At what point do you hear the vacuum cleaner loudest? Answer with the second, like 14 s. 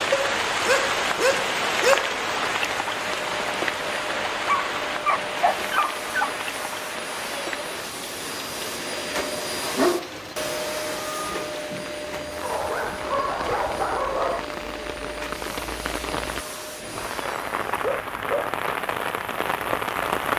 11 s.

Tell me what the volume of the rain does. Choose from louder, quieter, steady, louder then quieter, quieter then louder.
quieter then louder.